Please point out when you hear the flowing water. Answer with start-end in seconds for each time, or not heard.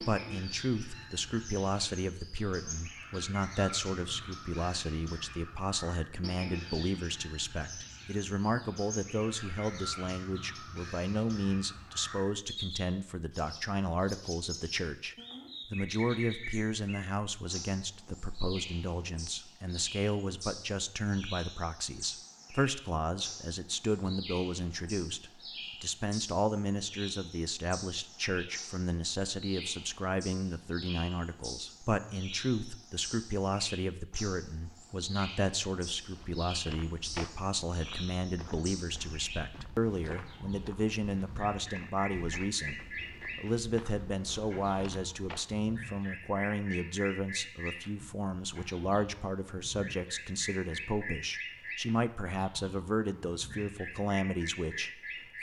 not heard.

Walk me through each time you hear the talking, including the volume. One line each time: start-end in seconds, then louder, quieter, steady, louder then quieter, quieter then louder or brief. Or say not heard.
0.0-55.3 steady.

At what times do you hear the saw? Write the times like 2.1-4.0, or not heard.
not heard.